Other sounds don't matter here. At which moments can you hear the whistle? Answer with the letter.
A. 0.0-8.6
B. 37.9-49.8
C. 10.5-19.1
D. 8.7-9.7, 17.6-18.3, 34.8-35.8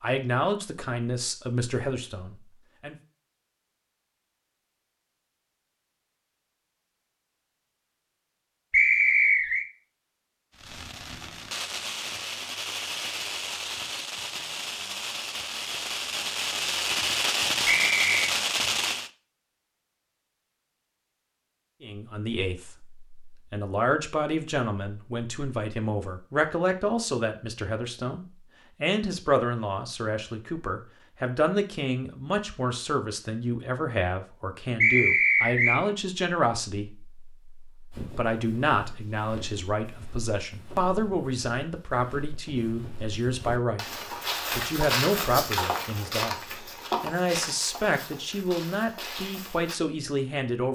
D.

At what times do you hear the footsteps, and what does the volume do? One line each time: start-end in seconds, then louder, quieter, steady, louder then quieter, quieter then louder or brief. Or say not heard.
37.9-49.8 louder then quieter.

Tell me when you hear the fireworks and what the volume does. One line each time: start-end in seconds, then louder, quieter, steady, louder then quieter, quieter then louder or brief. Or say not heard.
10.5-19.1 louder.